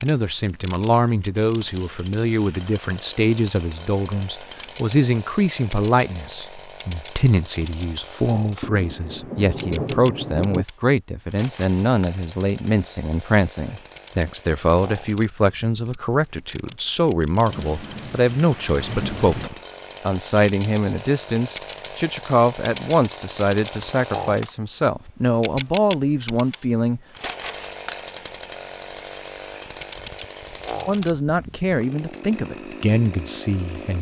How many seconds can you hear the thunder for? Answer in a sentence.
You can hear the thunder for 4 seconds altogether.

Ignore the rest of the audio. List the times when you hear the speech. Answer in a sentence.
The speech can be heard from 0.0 to 27.0 s and from 30.9 to 33.9 s.